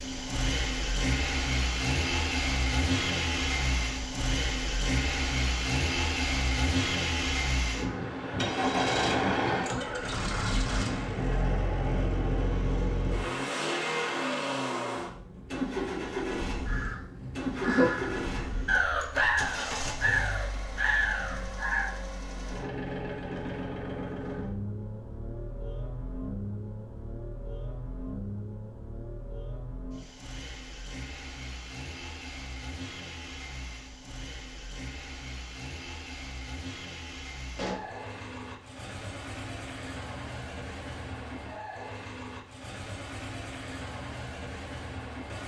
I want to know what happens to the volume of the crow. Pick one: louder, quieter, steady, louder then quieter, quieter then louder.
steady.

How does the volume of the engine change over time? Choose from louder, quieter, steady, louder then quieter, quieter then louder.
quieter.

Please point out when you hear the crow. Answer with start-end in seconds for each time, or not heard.
16.6-21.9.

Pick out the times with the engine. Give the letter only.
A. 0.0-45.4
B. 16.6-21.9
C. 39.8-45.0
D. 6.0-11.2
A.